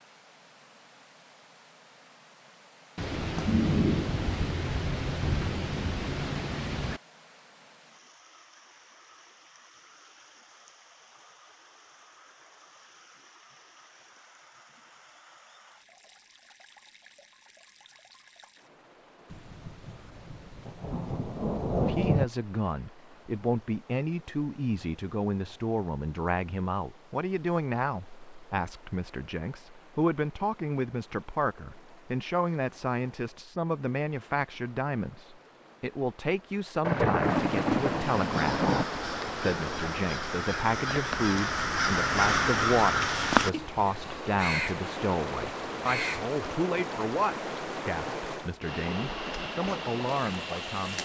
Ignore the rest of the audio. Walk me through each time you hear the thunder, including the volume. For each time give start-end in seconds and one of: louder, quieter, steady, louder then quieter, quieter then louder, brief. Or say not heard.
3.0-7.0 quieter
19.3-22.2 brief
36.8-38.9 brief.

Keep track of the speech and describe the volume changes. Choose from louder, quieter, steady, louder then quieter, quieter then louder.
steady.